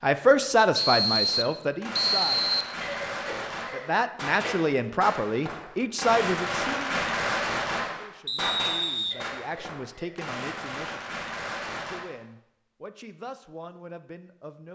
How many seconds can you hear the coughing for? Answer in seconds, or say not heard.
3 s.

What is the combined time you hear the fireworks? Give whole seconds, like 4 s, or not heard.
11 s.